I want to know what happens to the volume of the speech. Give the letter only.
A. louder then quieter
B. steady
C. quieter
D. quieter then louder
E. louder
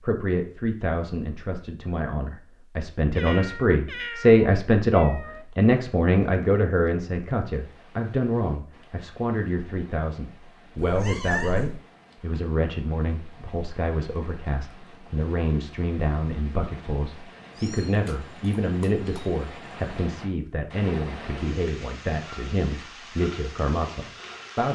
C.